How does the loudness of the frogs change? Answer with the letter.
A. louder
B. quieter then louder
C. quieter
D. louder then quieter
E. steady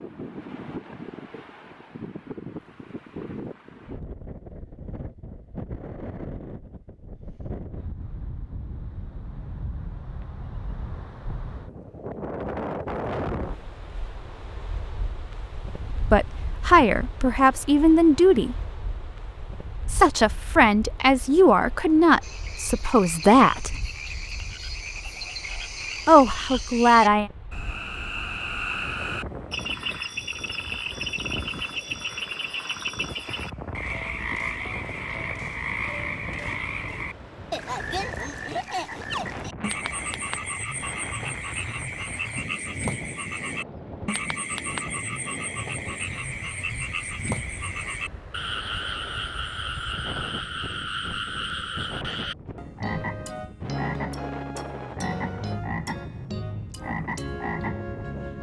E.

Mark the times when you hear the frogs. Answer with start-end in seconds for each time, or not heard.
22.2-58.3.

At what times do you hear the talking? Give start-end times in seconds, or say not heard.
16.1-18.6, 19.9-23.7, 26.1-27.3.